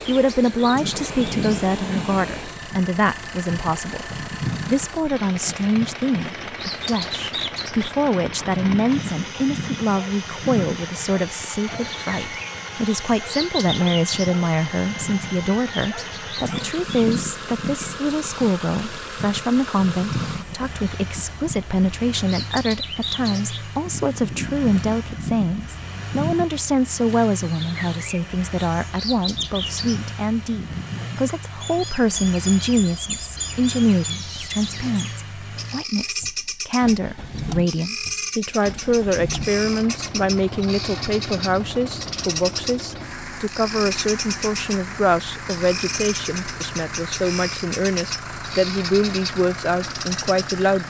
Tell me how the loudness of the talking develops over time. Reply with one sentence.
The loudness of the talking stays about the same.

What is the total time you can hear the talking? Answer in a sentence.
The talking can be heard for 51 seconds in total.